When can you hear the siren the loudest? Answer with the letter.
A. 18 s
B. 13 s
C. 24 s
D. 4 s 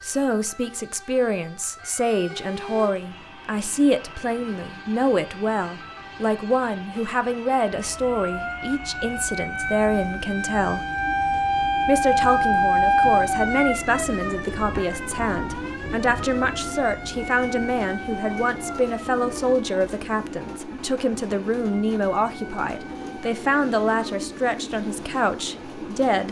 B.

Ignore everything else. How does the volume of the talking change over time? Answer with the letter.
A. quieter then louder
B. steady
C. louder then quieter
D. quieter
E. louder
B.